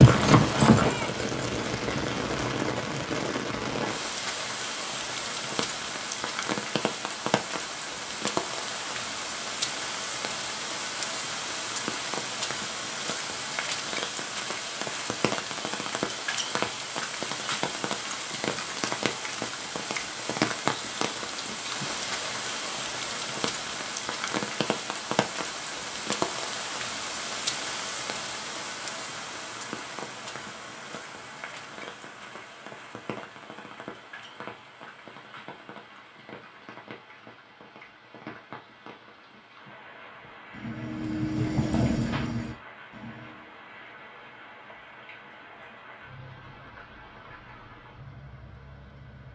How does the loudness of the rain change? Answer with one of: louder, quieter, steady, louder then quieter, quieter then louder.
quieter.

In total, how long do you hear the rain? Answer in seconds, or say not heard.
49 s.